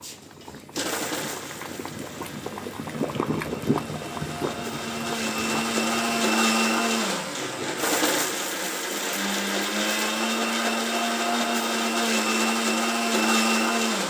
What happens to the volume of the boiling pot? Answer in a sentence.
The volume of the boiling pot goes up, then down.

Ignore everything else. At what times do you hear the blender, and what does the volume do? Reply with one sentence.
You can hear the blender from 0.0 to 14.0 s, getting louder.